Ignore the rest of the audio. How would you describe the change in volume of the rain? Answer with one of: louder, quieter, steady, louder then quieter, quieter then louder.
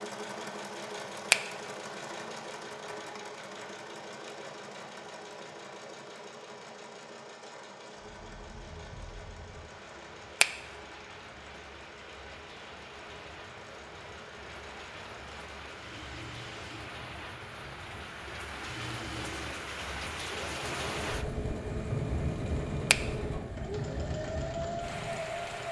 louder.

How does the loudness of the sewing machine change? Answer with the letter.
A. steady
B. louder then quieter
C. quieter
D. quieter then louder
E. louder
D.